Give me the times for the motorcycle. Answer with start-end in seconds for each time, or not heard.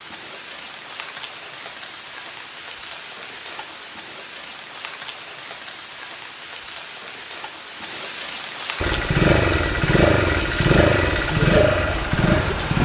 8.8-12.8.